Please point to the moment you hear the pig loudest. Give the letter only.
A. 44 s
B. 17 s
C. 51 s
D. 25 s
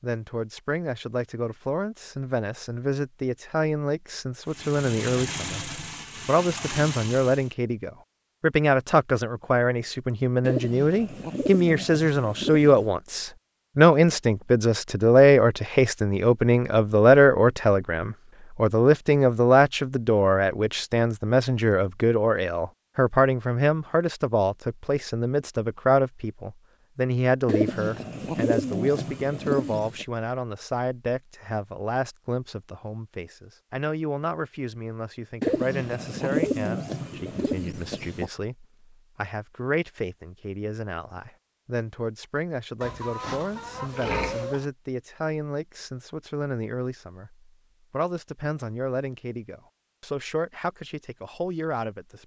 A.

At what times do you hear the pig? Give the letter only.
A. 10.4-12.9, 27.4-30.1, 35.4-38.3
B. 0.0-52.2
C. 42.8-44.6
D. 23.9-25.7
C.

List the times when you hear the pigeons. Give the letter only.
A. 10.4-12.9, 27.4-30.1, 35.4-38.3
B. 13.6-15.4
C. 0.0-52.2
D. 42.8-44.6
A.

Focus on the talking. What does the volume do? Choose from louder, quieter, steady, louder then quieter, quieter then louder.
louder then quieter.